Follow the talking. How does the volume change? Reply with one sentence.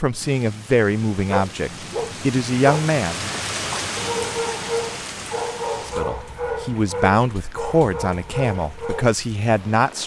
The volume of the talking stays about the same.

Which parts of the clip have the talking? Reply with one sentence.
The talking can be heard from 0.0 to 3.2 s and from 5.8 to 10.0 s.